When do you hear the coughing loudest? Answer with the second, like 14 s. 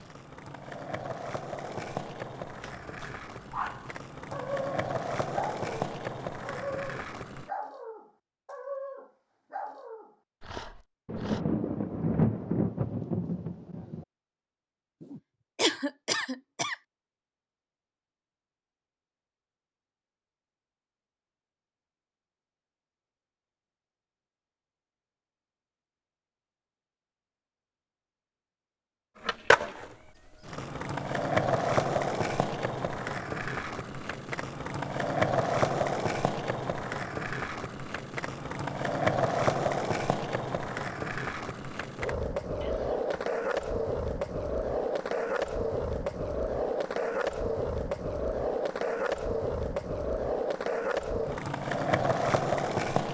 16 s.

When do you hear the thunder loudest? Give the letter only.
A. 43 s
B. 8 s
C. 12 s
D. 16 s
C.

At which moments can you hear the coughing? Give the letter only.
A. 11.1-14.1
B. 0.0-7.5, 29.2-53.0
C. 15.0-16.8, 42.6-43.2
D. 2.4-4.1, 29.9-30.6
C.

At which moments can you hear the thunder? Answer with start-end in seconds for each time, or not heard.
11.1-14.1.